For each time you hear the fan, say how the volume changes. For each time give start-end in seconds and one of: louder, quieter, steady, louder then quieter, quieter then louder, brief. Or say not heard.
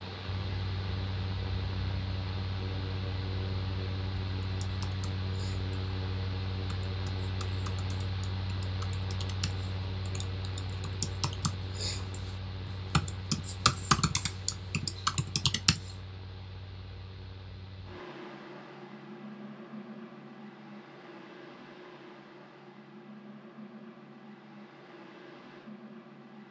0.0-26.4 quieter.